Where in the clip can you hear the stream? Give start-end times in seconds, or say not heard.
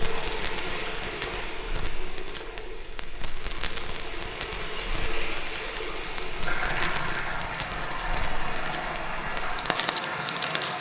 0.0-10.7.